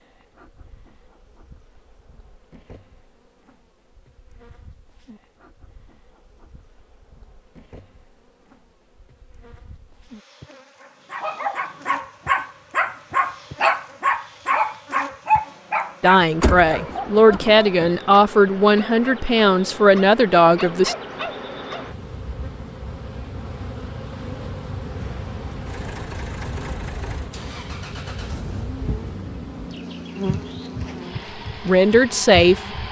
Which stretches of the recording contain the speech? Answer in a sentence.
You can hear the speech from 16.0 to 20.9 s and from 31.6 to 32.6 s.